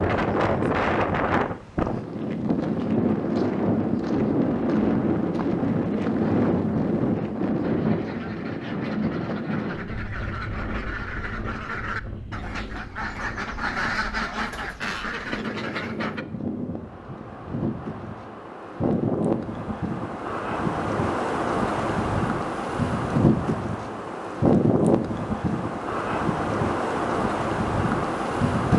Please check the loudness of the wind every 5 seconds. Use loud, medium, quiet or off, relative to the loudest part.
loud, loud, quiet, medium, loud, loud.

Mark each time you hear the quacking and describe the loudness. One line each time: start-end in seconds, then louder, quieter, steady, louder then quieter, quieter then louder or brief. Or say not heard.
7.6-16.2 louder.